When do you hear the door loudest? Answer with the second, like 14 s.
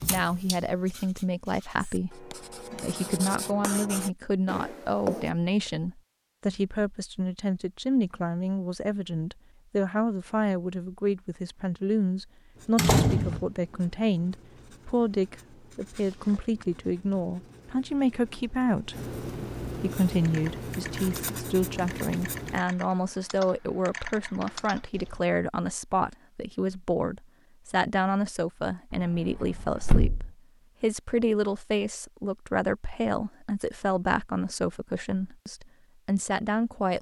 13 s.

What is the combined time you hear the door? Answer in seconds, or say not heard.
2 s.